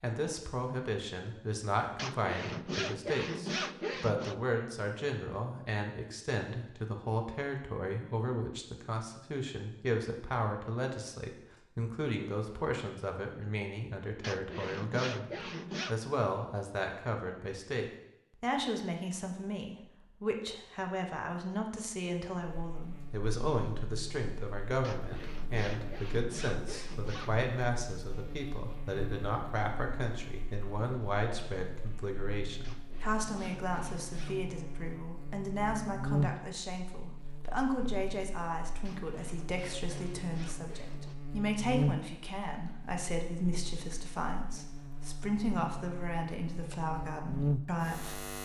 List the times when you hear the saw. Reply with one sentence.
The saw can be heard from 1.9 to 4.3 s, from 14.2 to 15.9 s, from 24.8 to 27.4 s, from 32.6 to 34.4 s and from 38.9 to 41.1 s.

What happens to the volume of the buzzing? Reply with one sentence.
The volume of the buzzing goes up.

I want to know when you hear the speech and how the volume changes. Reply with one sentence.
You can hear the speech from 0.0 to 48.2 s, at a steady volume.